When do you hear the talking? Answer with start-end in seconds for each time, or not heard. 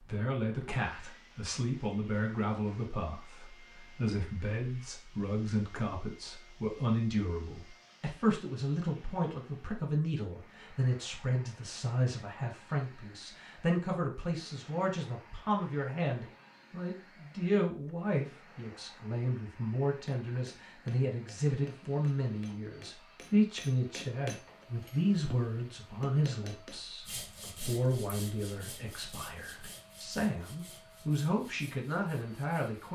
0.0-32.8.